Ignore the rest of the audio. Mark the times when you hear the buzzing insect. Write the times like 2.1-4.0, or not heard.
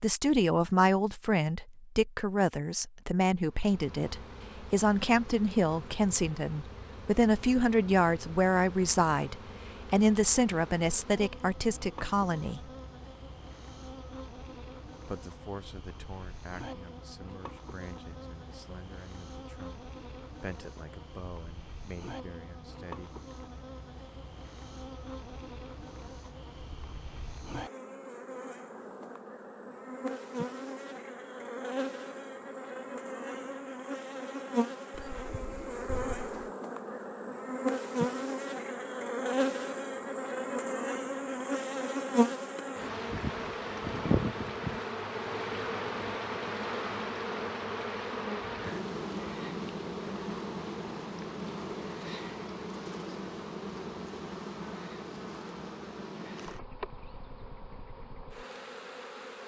3.5-59.4.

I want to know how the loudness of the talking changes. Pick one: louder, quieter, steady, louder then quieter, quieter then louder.
quieter.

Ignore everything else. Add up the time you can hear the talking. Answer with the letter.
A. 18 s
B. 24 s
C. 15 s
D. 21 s
D.